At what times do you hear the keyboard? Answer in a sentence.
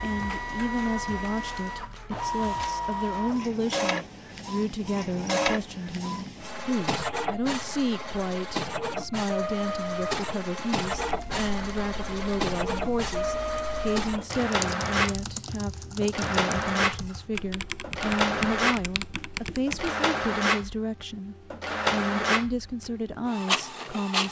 The keyboard can be heard from 10.9 to 19.9 s.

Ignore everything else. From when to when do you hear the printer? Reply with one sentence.
The printer can be heard from 0.0 to 24.2 s.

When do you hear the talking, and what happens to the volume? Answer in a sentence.
The talking can be heard from 0.0 to 24.2 s, at a steady volume.